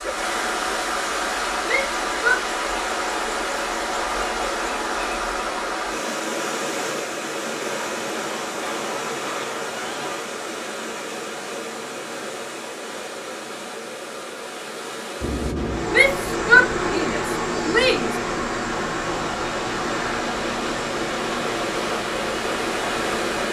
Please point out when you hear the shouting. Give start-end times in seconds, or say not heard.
1.6-2.4, 15.9-18.1.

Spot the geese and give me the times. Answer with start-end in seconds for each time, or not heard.
7.6-10.4.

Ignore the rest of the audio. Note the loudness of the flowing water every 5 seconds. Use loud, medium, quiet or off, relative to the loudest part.
loud, loud, medium, medium, loud.